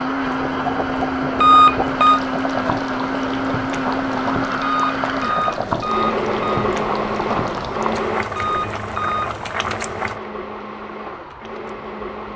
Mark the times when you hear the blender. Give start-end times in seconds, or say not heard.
0.0-12.3.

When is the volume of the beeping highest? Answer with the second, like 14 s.
2 s.